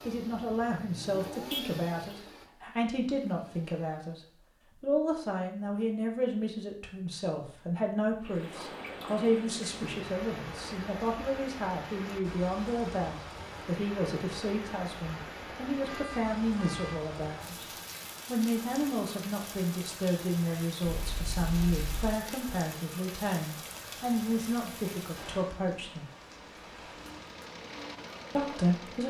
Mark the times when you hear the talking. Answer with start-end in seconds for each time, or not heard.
0.1-4.2, 4.8-17.6, 18.2-26.1, 28.3-29.0.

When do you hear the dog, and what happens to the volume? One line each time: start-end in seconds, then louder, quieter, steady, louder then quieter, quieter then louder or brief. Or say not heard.
not heard.